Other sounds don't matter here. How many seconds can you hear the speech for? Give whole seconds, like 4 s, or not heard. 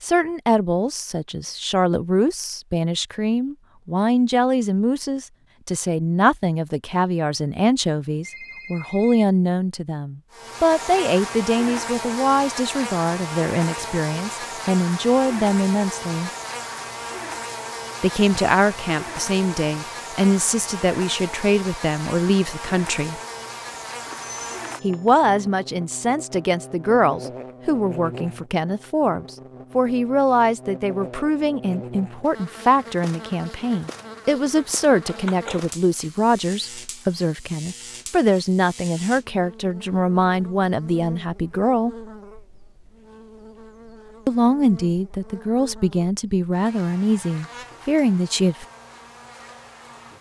43 s.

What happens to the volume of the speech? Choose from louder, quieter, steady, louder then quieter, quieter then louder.
steady.